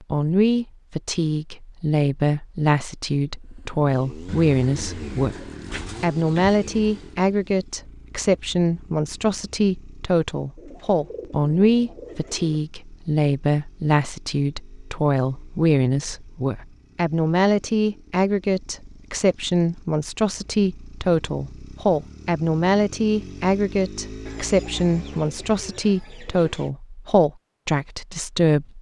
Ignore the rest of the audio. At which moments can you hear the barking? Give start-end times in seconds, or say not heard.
not heard.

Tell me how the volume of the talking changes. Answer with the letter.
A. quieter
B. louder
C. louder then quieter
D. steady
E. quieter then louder
D.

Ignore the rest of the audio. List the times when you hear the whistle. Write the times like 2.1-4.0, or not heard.
not heard.